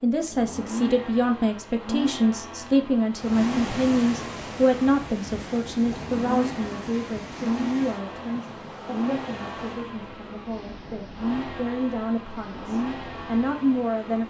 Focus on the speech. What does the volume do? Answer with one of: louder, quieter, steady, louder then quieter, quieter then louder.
quieter then louder.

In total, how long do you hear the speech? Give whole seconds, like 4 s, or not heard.
14 s.